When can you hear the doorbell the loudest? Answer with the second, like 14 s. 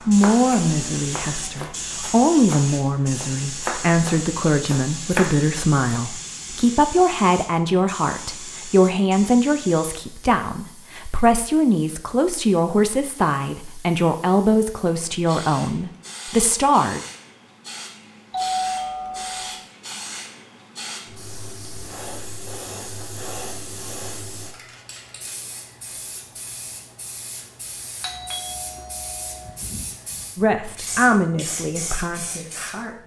19 s.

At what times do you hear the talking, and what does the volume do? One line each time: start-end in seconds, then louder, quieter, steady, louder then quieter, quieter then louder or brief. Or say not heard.
0.1-17.0 steady
30.4-33.0 brief.